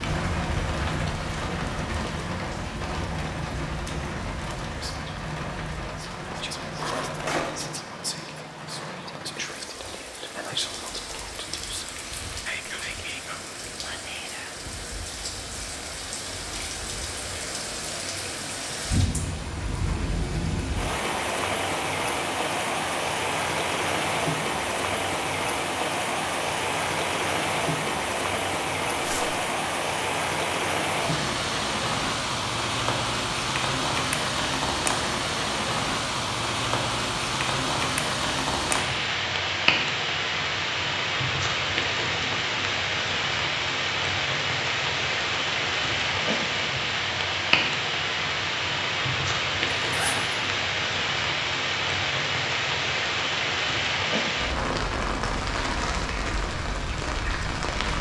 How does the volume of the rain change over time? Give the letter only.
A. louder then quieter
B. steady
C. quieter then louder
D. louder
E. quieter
D.